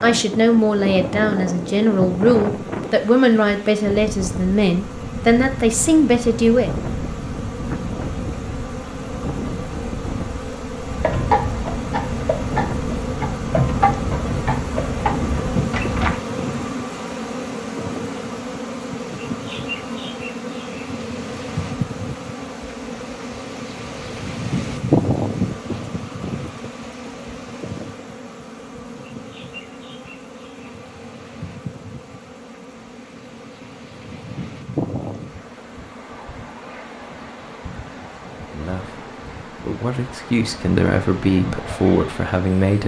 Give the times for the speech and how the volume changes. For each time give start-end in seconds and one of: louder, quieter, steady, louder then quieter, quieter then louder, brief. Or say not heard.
0.0-6.7 steady
38.5-42.8 louder.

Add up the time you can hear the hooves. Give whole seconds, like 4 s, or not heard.
5 s.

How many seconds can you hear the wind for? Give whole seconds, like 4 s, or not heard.
43 s.